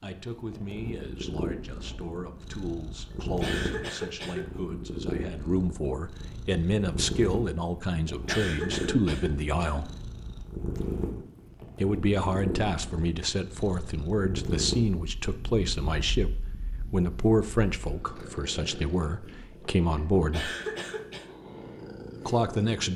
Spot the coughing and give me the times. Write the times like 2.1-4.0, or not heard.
3.4-4.5, 8.2-9.9, 20.3-21.4.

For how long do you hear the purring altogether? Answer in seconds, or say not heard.
23 s.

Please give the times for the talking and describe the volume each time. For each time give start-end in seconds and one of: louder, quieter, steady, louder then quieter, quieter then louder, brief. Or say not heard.
0.0-9.9 louder
11.8-20.6 steady
22.2-22.9 brief.